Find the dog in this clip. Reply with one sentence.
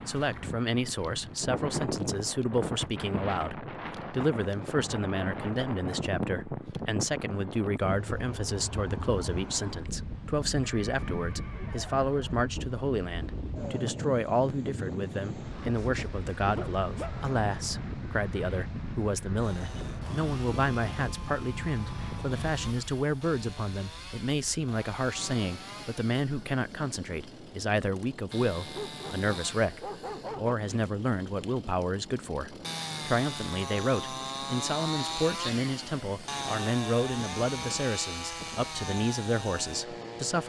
You can hear the dog from 15.8 to 17.3 s and from 28.8 to 30.6 s.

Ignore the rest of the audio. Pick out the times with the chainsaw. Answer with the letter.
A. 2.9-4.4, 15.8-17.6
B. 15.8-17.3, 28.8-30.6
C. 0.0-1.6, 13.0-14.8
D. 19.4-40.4
D.